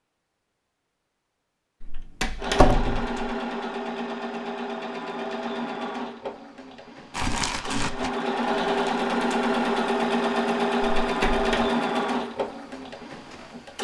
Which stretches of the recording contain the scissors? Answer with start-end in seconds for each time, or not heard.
not heard.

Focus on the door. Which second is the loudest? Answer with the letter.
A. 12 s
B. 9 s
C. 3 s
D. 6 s
C.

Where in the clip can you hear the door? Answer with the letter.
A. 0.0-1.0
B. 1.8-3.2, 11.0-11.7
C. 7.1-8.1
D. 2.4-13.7
B.